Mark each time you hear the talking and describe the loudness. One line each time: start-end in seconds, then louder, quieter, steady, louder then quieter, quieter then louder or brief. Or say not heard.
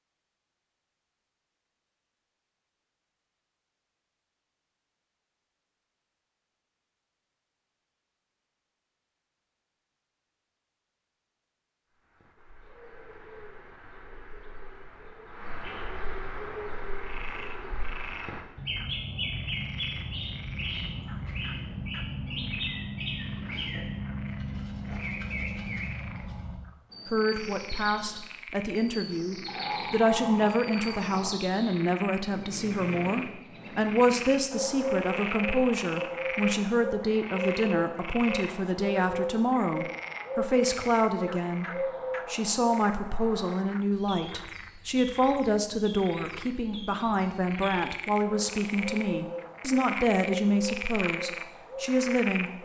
27.1-52.5 steady.